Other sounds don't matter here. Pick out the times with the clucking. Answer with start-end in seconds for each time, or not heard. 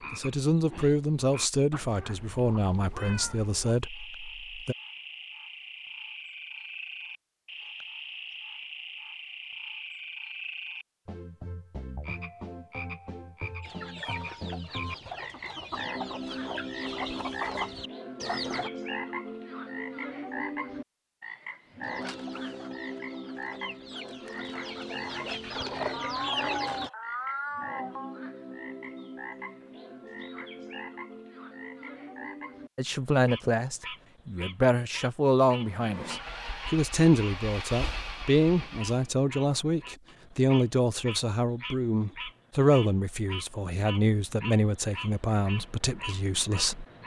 13.6-18.7, 21.8-26.9.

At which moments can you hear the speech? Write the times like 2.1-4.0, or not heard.
0.1-4.8, 32.8-46.9.